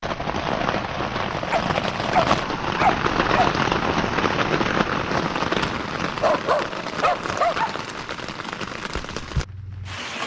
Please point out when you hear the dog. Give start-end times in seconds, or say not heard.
1.5-3.5, 6.2-7.9.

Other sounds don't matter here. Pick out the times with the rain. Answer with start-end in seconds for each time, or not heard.
0.0-10.2.